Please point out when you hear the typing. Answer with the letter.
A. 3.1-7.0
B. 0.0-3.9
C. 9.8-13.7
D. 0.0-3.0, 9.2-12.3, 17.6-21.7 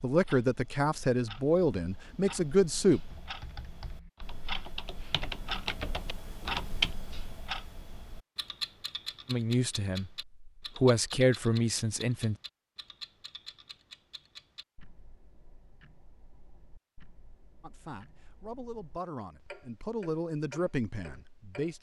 A.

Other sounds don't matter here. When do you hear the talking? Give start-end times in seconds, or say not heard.
0.0-3.0, 9.2-12.3, 17.6-21.7.